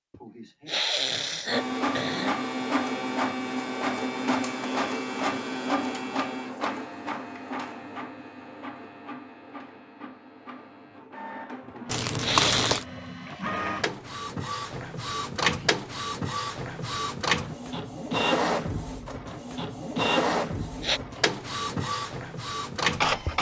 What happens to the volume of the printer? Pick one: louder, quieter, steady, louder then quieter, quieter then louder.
quieter then louder.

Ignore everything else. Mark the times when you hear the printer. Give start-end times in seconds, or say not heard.
1.5-23.3.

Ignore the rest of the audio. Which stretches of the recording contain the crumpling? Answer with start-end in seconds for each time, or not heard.
11.8-12.8.